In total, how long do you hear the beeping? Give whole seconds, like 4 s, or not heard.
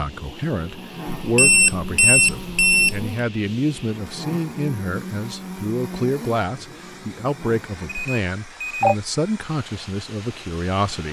3 s.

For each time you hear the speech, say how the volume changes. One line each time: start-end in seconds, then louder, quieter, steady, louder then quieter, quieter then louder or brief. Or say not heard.
0.0-11.0 steady.